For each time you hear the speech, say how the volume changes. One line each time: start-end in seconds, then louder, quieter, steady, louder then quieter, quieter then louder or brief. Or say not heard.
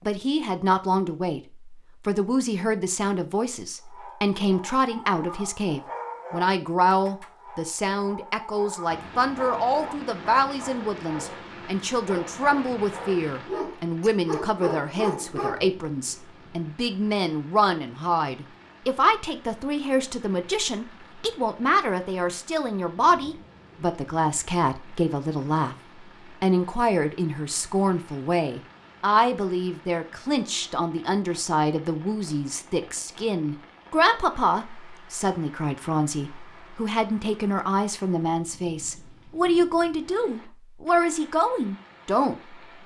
0.1-25.8 steady
26.4-42.4 steady.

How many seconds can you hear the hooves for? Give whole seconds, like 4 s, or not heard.
not heard.